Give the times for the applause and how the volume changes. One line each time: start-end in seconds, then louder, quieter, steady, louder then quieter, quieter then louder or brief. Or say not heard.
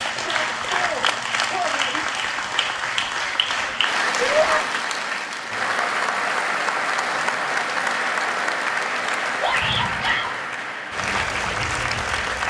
0.0-12.4 steady.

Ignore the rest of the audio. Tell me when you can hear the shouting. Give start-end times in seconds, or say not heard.
0.1-2.0, 4.2-4.6, 9.4-10.4.